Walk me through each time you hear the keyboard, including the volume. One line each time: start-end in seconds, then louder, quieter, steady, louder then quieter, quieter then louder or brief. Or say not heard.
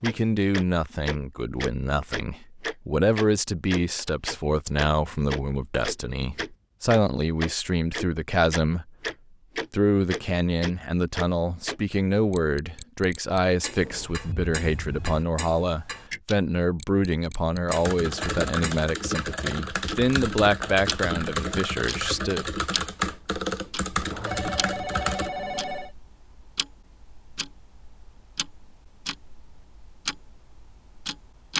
17.6-25.3 steady.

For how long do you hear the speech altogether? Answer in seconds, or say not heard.
22 s.